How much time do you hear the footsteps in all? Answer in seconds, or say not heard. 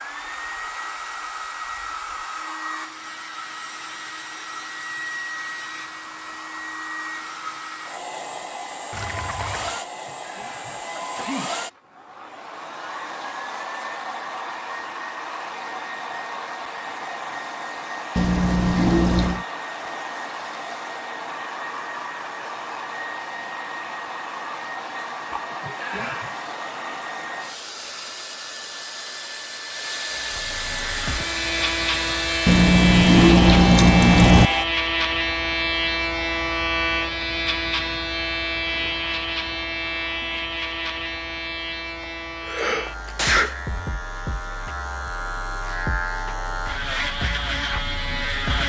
not heard.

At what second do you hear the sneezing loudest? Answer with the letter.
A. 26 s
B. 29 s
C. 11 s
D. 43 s
D.